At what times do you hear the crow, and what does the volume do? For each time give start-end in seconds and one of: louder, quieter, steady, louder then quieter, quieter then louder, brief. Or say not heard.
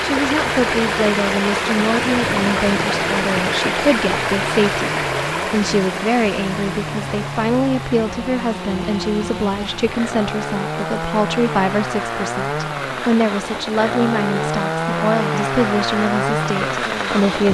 not heard.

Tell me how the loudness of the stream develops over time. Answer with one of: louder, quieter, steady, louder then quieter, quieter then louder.
quieter.